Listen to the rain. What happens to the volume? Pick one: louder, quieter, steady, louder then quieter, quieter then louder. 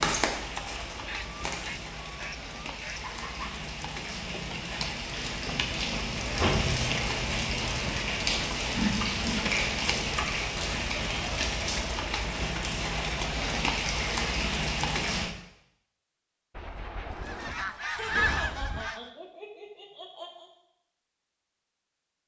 louder.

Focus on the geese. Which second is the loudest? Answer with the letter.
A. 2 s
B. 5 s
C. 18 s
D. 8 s
C.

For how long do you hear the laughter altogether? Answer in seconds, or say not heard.
3 s.